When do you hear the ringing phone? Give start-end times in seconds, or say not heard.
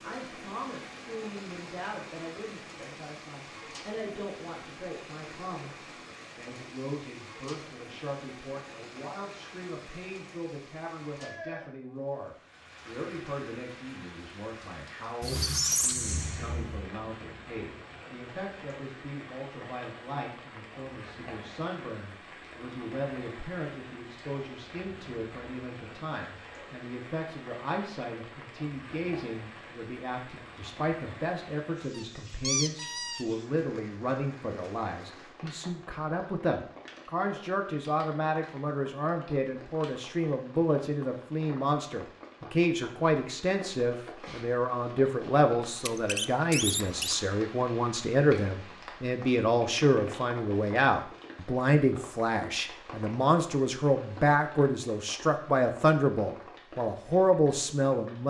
not heard.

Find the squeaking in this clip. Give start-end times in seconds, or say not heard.
15.2-16.9, 31.9-33.2, 45.8-47.1.